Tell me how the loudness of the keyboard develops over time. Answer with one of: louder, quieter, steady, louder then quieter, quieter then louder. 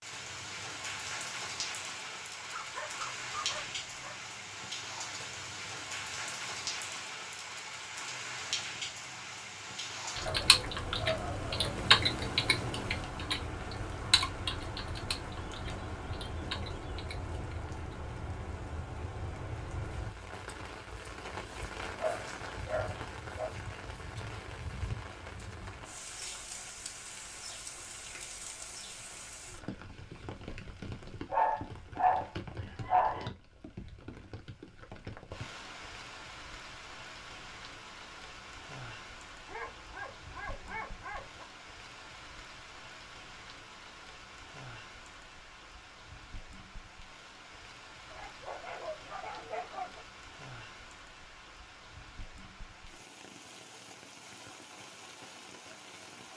louder then quieter.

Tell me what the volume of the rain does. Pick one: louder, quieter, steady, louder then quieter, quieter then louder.
quieter.